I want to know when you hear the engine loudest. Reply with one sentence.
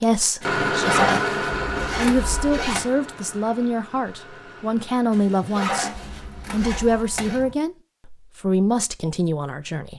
The volume of the engine peaks at 1 second.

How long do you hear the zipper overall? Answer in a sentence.
The zipper can be heard for 5 seconds in total.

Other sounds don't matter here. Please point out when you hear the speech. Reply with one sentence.
The speech can be heard from 0.0 to 1.2 s, from 1.9 to 5.9 s and from 6.5 to 9.9 s.